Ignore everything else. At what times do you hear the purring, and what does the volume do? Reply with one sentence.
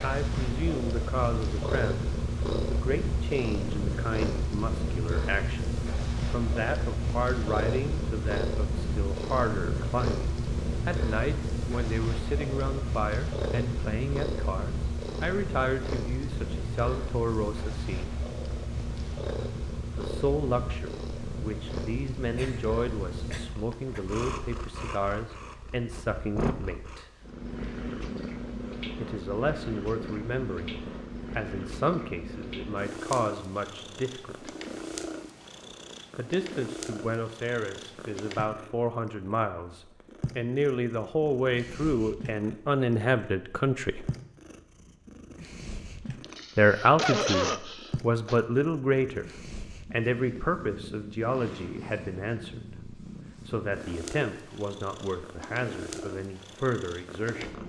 The purring can be heard from 0.0 to 57.6 s, getting quieter.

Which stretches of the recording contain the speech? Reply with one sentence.
The speech can be heard from 0.0 to 18.2 s, from 19.9 to 27.1 s, from 28.9 to 34.5 s, from 36.1 to 44.0 s and from 46.5 to 57.6 s.